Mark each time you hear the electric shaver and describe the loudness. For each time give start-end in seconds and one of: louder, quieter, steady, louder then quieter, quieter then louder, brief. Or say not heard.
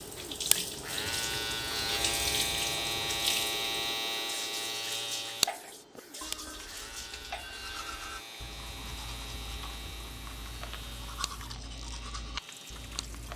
0.0-13.2 quieter.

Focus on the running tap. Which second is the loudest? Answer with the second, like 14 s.
3 s.